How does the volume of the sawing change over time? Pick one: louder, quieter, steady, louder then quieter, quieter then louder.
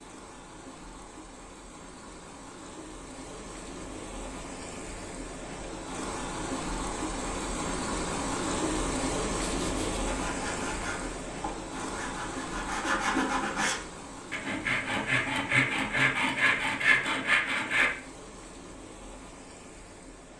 louder.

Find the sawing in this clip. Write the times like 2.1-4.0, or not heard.
9.6-17.9.